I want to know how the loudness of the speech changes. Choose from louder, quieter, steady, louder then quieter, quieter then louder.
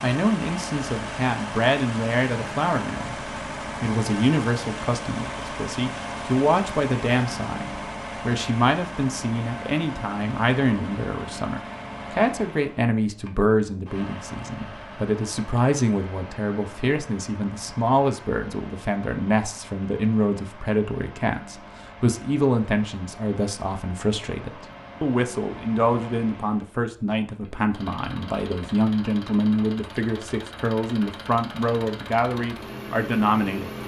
steady.